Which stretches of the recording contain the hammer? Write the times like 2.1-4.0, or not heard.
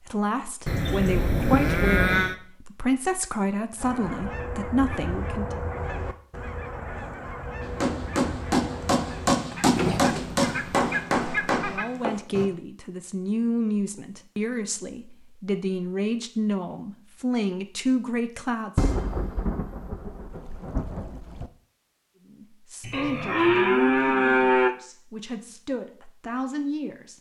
7.6-12.5.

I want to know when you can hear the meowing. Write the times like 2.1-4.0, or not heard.
not heard.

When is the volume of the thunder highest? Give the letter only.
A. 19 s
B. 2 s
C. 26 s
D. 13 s
A.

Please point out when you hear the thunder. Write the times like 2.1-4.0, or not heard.
18.8-21.5.